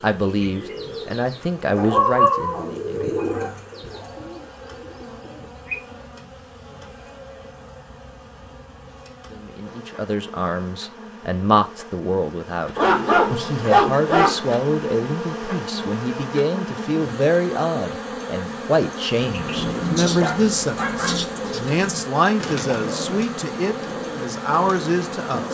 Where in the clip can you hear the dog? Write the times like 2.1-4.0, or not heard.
1.8-3.5, 12.8-14.3, 19.1-21.1.